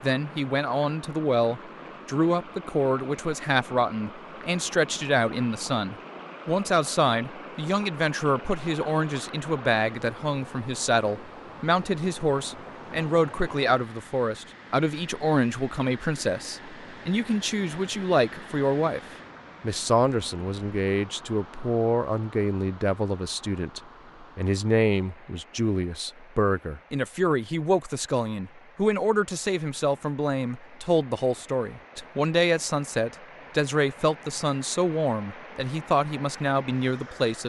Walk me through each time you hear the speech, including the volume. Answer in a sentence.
You can hear the speech from 0.0 to 19.0 s, at a steady volume; and from 19.6 to 37.4 s, at a steady volume.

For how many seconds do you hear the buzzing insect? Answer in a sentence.
The buzzing insect can't be heard in this clip.